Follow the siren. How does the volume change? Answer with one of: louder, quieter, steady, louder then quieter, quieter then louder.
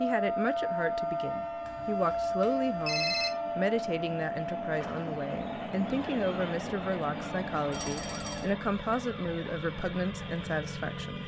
quieter.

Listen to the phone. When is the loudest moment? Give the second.
3 s.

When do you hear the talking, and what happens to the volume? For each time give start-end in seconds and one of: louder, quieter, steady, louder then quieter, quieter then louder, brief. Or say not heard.
0.0-11.2 steady.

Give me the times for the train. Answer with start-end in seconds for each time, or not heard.
0.0-8.6.